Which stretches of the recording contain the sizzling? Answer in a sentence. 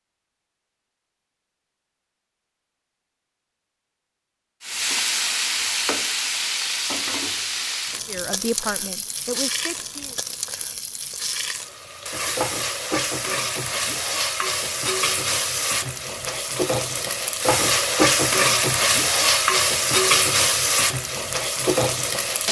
You can hear the sizzling from 4.6 to 22.4 s.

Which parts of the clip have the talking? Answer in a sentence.
You can hear the talking from 8.1 to 10.2 s.